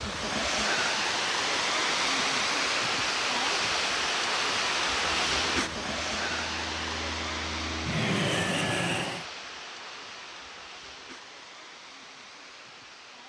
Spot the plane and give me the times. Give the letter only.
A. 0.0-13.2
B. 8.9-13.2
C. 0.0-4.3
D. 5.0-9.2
D.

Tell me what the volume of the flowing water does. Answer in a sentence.
The volume of the flowing water goes down.